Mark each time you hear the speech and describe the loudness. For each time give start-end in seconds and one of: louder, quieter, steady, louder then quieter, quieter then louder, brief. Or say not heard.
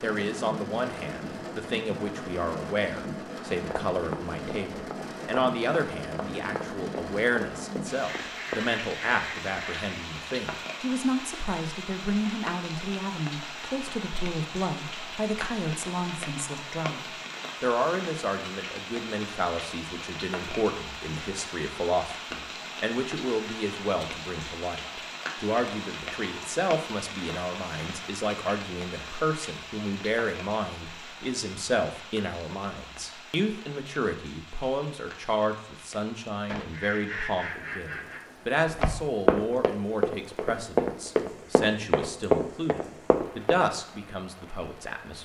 0.0-45.2 steady.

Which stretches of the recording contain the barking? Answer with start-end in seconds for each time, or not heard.
not heard.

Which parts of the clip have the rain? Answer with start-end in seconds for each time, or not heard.
0.0-45.2.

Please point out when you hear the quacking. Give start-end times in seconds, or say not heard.
8.0-10.0, 36.5-38.2.